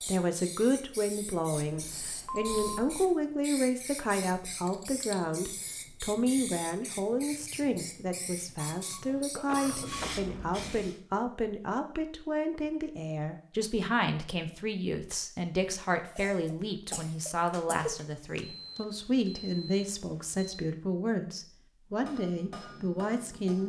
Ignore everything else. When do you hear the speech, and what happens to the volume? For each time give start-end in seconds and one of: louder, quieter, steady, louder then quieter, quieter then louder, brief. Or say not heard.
0.1-23.6 steady.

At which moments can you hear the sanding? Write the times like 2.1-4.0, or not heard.
not heard.